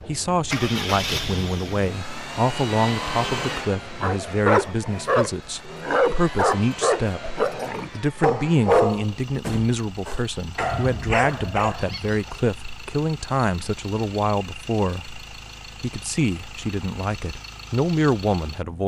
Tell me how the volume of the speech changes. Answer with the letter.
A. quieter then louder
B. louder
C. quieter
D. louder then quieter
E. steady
E.